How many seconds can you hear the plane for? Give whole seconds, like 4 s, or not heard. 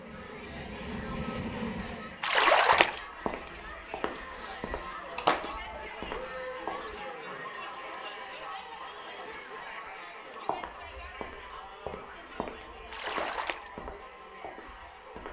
2 s.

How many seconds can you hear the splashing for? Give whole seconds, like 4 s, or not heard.
2 s.